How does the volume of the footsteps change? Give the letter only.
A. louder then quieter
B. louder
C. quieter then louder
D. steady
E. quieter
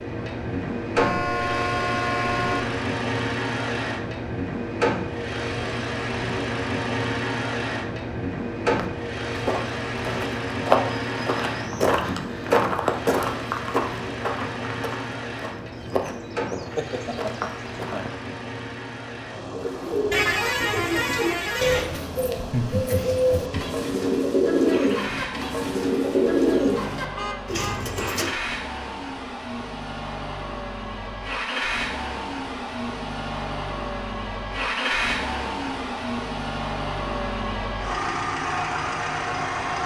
E.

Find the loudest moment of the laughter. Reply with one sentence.
The loudest moment of the laughter is at 23 seconds.